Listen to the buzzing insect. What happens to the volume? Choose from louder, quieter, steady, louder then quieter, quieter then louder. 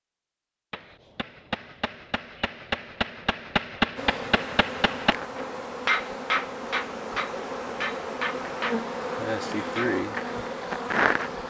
louder.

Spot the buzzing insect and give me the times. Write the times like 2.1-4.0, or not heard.
4.0-11.4.